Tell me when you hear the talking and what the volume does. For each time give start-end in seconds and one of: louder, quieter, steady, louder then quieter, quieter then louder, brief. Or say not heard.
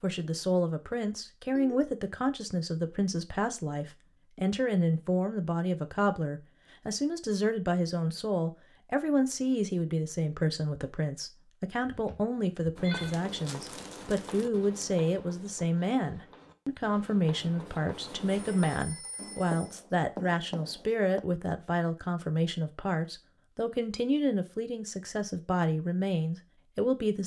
0.0-27.2 steady.